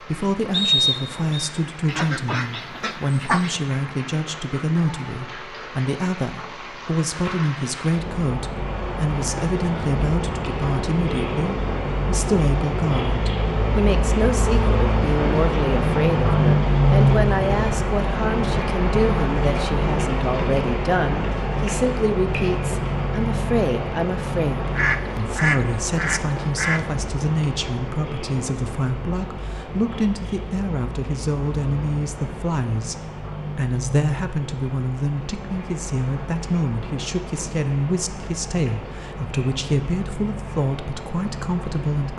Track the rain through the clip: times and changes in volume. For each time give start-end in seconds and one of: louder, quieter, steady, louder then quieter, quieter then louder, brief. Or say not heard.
0.0-42.1 louder then quieter.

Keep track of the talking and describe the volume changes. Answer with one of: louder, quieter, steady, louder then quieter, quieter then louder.
steady.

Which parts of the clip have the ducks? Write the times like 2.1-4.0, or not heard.
1.9-3.6, 24.8-26.9.